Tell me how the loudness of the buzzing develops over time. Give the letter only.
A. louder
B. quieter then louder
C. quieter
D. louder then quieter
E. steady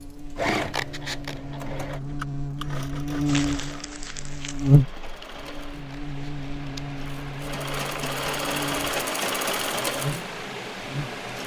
D.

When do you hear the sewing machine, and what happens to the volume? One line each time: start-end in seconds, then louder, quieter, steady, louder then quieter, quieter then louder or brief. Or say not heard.
0.0-11.4 quieter then louder.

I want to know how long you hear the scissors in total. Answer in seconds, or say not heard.
2 s.